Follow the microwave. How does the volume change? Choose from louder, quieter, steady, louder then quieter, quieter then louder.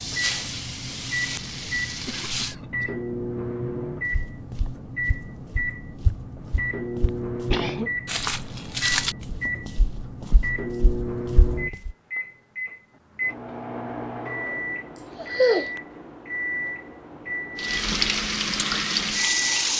steady.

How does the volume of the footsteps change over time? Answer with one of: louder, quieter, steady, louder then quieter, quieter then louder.
louder then quieter.